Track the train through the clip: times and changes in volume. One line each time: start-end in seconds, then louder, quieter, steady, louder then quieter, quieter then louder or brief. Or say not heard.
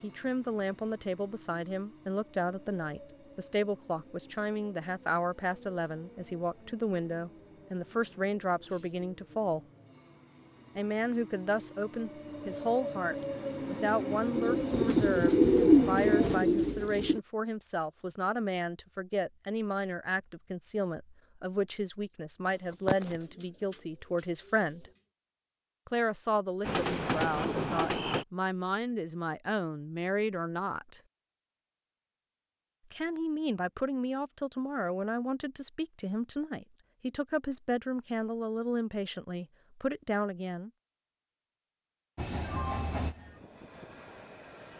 0.0-16.4 louder
26.6-28.2 brief
42.1-44.7 brief.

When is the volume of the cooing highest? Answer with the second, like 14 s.
16 s.